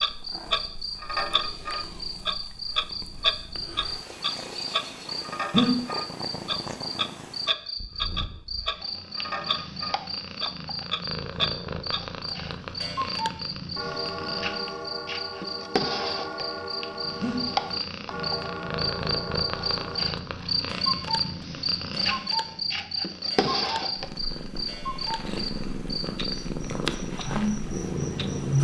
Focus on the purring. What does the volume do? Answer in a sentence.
The loudness of the purring goes up.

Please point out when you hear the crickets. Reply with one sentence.
You can hear the crickets from 0.0 to 28.6 s.